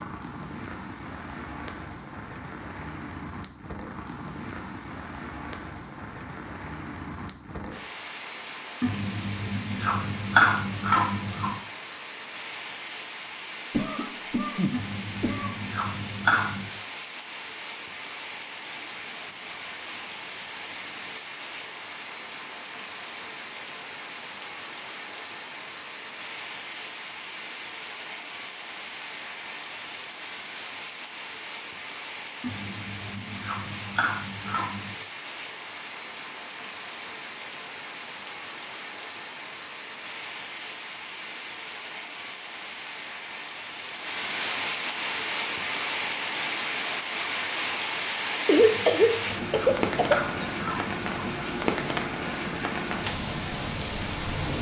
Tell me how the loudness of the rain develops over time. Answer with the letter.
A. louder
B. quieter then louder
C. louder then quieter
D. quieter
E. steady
A.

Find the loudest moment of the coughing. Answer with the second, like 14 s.
49 s.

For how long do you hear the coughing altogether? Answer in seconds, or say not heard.
6 s.